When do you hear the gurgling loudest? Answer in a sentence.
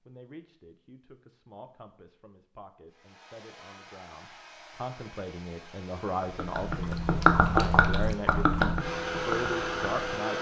The loudest moment of the gurgling is at 7 seconds.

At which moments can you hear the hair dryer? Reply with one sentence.
You can hear the hair dryer from 2.9 to 10.3 s.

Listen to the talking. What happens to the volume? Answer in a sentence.
The volume of the talking goes up.